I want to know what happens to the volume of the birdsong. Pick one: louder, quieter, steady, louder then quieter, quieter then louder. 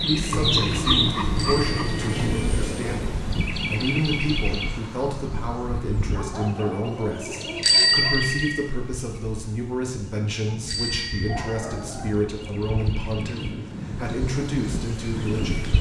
quieter.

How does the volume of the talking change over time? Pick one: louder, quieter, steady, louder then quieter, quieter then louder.
steady.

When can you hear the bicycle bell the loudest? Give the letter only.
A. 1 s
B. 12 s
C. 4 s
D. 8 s
D.